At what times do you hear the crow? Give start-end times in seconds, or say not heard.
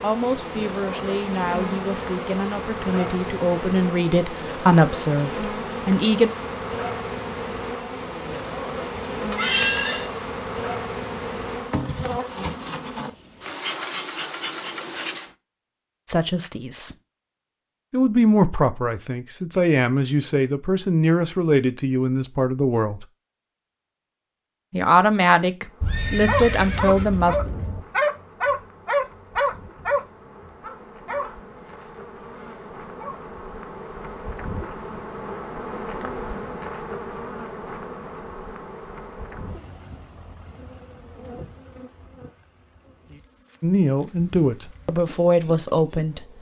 not heard.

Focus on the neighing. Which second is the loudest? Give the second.
10 s.